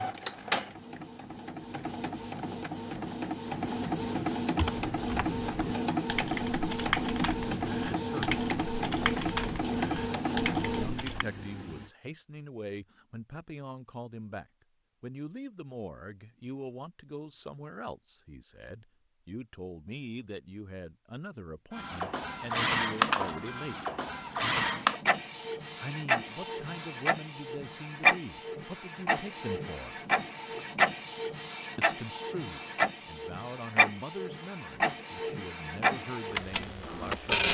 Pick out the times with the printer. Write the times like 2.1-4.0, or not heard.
0.0-11.8, 21.8-37.4.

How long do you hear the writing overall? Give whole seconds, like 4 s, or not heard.
not heard.